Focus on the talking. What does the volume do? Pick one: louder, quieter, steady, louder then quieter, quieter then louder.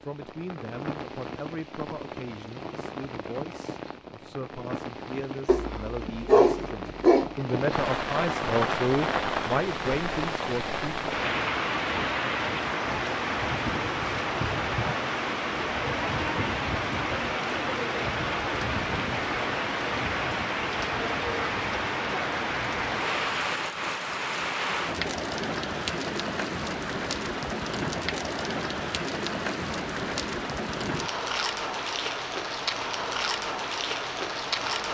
louder.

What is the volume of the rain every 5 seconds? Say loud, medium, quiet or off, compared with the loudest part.
medium, loud, loud, loud, loud, loud, loud.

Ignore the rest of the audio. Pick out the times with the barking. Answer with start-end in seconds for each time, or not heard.
5.5-7.3.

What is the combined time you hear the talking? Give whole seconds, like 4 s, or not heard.
11 s.